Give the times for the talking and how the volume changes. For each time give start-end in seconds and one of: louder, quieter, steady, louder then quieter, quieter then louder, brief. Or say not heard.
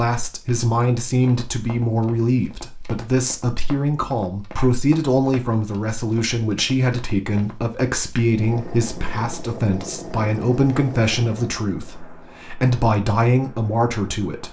0.0-14.4 steady.